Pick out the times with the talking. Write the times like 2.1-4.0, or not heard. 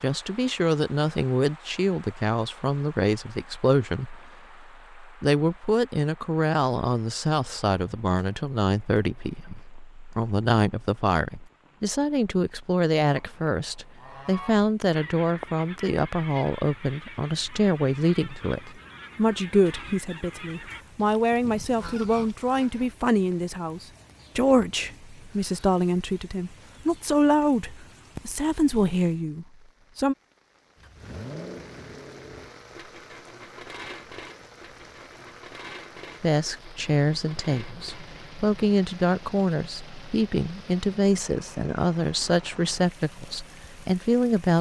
0.0-30.1, 36.2-44.5.